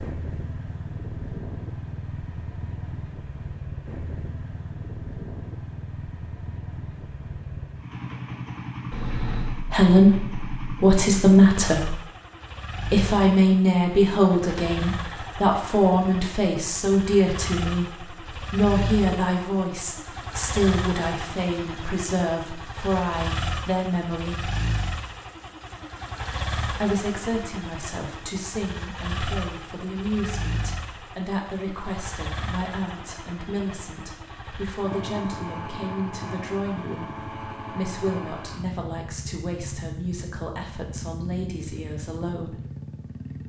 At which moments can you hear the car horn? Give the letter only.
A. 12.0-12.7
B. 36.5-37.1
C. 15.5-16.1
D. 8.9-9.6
D.